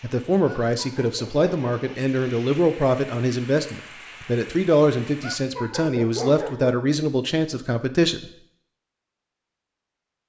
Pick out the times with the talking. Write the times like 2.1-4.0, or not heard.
0.0-8.3.